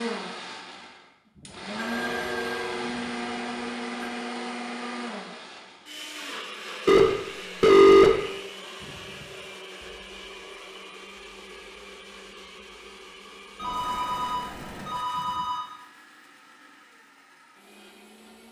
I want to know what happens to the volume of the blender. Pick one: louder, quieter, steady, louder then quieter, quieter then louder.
quieter.